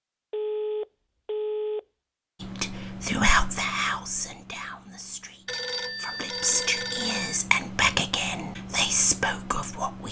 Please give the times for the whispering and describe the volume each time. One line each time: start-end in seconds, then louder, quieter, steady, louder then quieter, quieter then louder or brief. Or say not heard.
2.4-10.0 quieter then louder.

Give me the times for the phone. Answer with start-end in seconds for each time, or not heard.
0.3-1.9, 5.5-7.4.